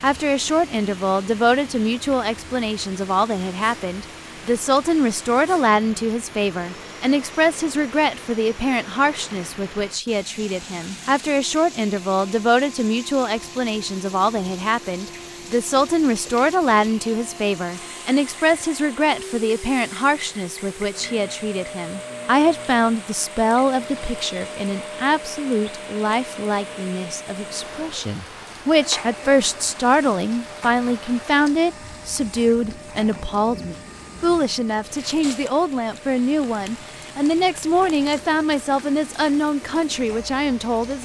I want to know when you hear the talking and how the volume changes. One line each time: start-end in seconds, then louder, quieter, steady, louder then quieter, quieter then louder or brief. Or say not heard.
0.0-41.0 steady.